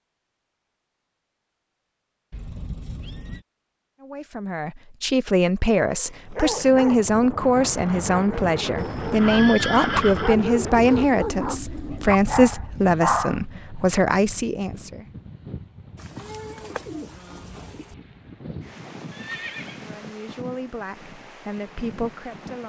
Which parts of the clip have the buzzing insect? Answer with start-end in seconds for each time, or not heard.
not heard.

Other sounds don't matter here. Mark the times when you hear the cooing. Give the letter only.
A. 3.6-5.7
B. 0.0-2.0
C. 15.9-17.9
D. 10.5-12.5
C.